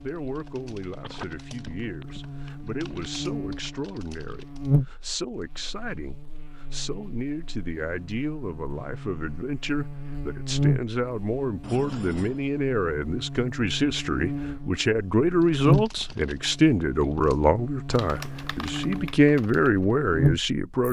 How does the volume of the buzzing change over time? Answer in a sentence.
The volume of the buzzing goes up, then down.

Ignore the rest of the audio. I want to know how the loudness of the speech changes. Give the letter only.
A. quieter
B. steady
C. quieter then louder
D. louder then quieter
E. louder
E.